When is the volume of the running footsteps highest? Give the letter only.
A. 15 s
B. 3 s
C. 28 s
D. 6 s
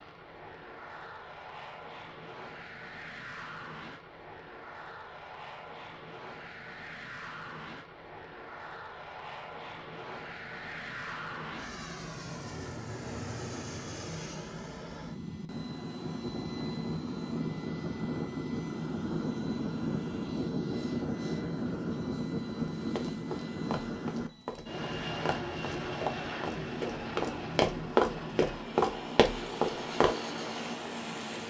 C.